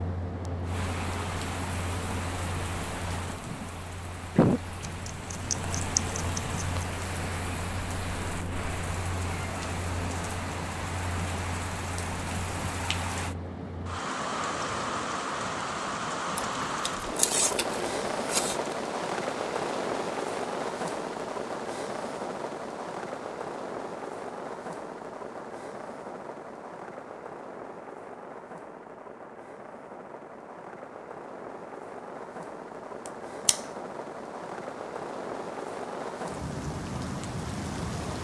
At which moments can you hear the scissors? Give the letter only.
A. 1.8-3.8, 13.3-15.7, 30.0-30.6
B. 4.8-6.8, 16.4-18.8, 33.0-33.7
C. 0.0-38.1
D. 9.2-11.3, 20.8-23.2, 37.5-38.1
B.